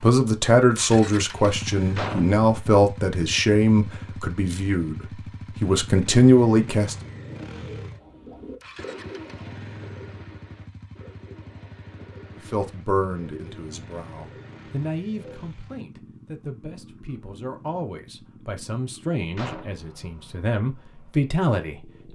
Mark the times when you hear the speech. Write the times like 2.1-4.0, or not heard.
0.0-7.0, 12.3-22.0.